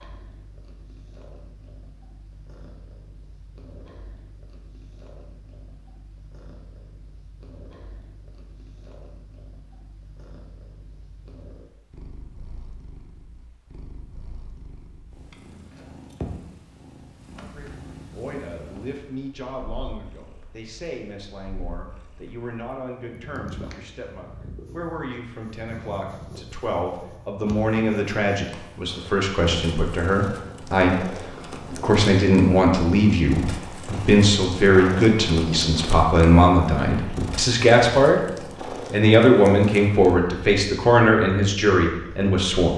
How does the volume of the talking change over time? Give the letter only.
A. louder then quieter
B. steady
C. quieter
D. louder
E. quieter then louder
D.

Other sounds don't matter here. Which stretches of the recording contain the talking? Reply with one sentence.
You can hear the talking from 17.4 to 42.7 s.